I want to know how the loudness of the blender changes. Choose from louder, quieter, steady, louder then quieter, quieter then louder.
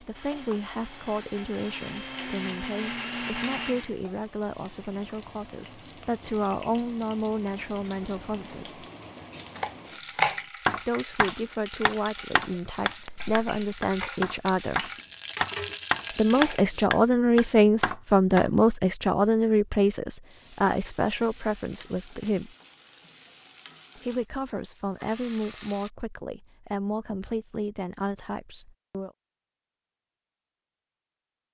louder.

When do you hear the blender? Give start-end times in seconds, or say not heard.
0.0-4.1.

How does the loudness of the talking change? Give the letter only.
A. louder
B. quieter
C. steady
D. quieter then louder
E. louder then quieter
E.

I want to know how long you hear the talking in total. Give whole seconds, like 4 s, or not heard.
24 s.